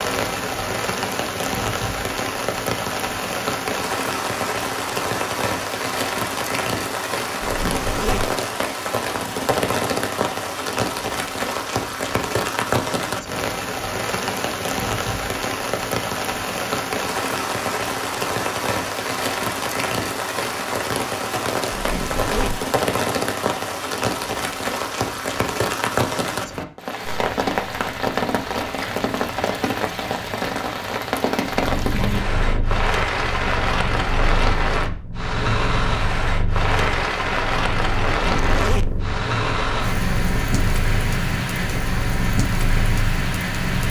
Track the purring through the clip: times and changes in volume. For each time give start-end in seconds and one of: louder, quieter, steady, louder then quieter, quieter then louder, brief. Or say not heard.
31.4-43.8 steady.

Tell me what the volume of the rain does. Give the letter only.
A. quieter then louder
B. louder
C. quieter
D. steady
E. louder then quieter
D.